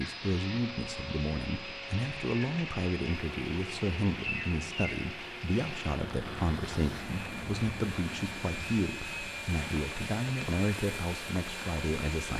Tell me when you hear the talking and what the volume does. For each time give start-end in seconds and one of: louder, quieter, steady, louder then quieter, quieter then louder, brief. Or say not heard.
0.0-12.3 steady.